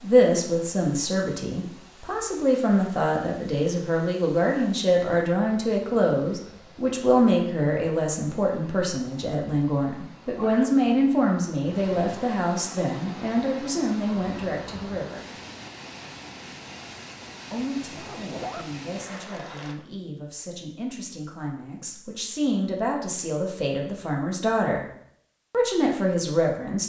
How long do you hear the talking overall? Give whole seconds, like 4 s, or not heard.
24 s.